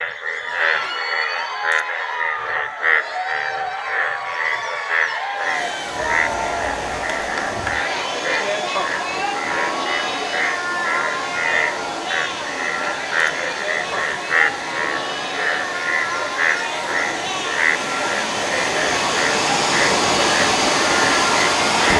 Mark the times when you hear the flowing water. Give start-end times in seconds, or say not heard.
5.3-21.9.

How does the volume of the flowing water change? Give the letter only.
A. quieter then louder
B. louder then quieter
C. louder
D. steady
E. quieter
C.